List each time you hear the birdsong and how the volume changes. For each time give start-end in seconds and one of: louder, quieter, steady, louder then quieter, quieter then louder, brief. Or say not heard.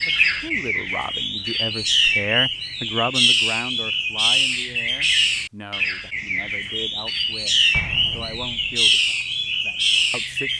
0.0-10.5 steady.